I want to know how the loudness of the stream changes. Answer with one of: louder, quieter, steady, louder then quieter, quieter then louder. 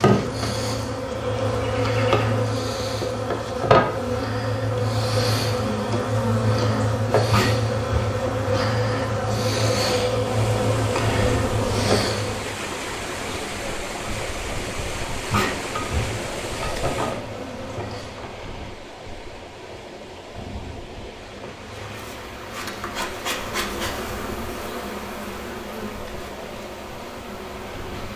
quieter.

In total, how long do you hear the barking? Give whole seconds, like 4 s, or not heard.
2 s.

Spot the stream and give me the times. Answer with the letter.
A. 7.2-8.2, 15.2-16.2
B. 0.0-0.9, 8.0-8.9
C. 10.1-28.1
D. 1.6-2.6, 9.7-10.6
C.